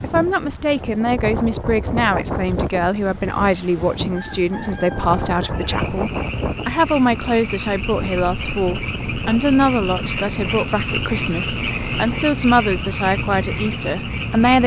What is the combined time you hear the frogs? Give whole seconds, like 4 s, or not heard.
9 s.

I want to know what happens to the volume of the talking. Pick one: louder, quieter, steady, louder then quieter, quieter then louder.
steady.